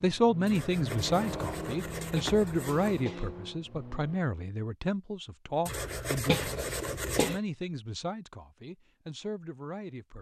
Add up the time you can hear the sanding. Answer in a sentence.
You can hear the sanding for 4 seconds altogether.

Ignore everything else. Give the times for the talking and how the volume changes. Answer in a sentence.
The talking can be heard from 0.0 to 10.1 s, getting quieter.